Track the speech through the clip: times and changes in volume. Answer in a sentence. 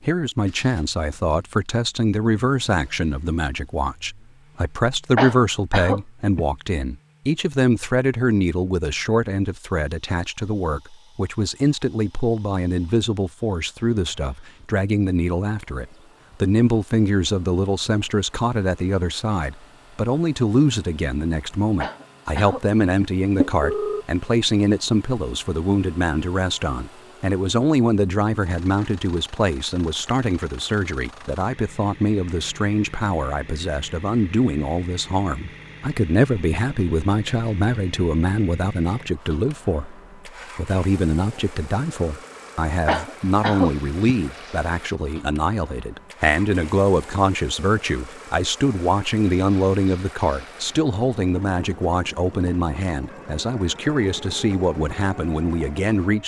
The speech can be heard from 0.0 to 56.2 s, at a steady volume.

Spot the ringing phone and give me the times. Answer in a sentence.
The ringing phone can be heard from 23.4 to 24.1 s.